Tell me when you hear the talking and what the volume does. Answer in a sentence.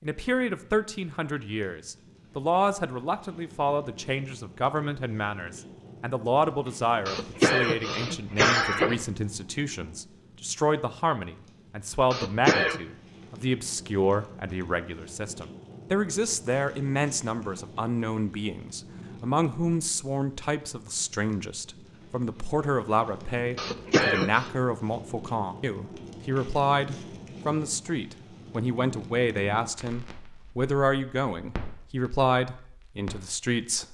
You can hear the talking from 0.0 to 33.8 s, at a steady volume.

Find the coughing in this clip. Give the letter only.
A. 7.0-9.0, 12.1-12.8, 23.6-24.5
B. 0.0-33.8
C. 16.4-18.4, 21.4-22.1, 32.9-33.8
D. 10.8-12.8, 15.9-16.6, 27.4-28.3
A.